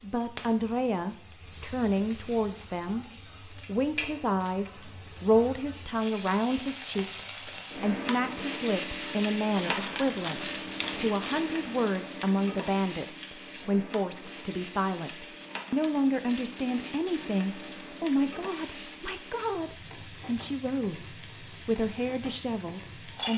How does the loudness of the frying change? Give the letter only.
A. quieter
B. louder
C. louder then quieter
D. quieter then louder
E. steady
C.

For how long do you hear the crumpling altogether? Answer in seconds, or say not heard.
2 s.